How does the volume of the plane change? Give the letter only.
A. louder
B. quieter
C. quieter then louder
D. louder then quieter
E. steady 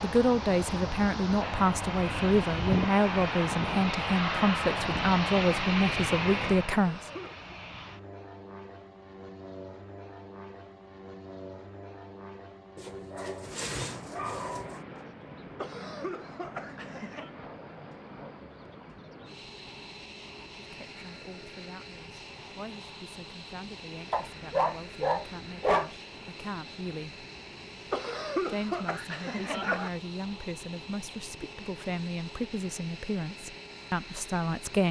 B.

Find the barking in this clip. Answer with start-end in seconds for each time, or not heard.
12.8-14.8, 24.1-25.9.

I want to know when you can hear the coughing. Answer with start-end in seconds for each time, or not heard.
6.7-7.5, 15.6-17.3, 27.9-29.9.